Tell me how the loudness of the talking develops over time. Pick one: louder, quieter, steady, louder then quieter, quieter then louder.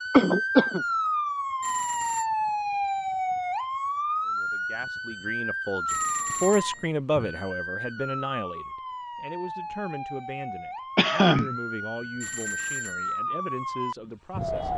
quieter.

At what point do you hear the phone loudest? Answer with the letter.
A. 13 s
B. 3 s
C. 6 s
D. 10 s
C.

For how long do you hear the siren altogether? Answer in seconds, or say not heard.
15 s.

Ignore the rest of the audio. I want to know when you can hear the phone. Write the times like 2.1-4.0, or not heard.
1.6-2.3, 5.8-6.9, 12.2-13.2.